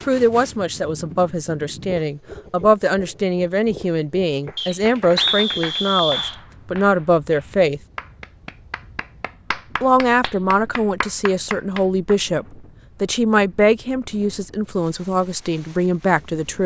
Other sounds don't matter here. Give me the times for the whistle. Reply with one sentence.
The whistle can be heard from 4.5 to 6.3 s.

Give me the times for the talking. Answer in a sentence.
You can hear the talking from 0.1 to 7.8 s and from 9.8 to 16.6 s.